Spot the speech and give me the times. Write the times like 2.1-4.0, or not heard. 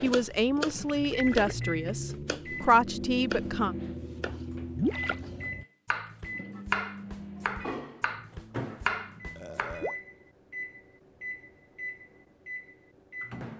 0.0-3.8.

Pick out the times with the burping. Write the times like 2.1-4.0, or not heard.
9.3-10.0.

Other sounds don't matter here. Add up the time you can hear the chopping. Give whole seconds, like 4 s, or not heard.
10 s.